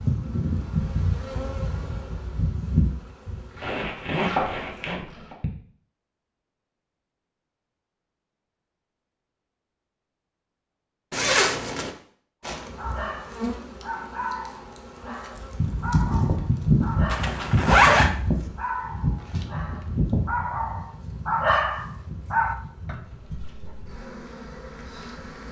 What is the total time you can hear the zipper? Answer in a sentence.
The zipper can be heard for 4 seconds in total.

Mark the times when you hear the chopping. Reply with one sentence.
The chopping can be heard from 3.5 to 5.3 s.